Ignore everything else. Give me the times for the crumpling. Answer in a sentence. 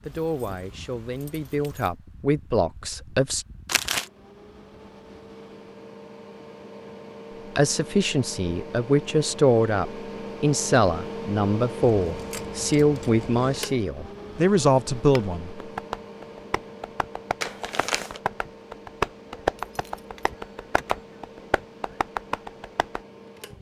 The crumpling can be heard from 3.6 to 4.1 s and from 17.4 to 18.2 s.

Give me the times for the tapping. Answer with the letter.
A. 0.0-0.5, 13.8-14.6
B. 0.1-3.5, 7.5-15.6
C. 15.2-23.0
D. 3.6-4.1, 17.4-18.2
C.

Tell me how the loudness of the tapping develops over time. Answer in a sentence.
The volume of the tapping goes up, then down.